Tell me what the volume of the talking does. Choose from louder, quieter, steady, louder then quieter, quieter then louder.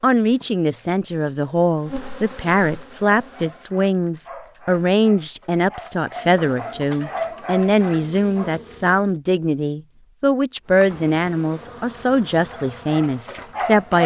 steady.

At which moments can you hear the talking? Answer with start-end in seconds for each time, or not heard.
0.0-14.0.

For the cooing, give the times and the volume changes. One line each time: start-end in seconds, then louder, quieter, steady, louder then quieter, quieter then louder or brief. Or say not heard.
not heard.